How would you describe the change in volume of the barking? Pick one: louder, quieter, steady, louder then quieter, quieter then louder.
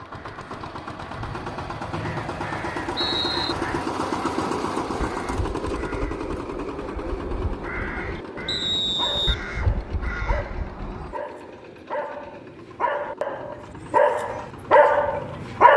louder.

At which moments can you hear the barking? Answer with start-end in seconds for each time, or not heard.
8.2-15.7.